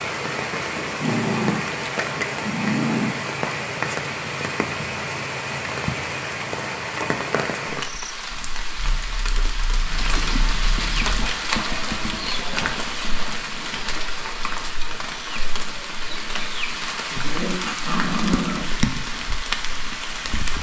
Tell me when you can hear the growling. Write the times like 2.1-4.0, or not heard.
0.8-3.1, 8.6-11.3, 17.2-18.7.